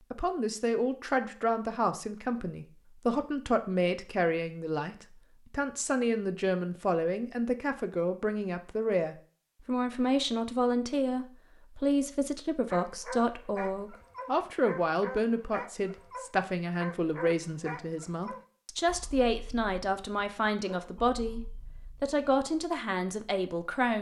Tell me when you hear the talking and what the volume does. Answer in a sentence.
You can hear the talking from 0.1 to 23.9 s, at a steady volume.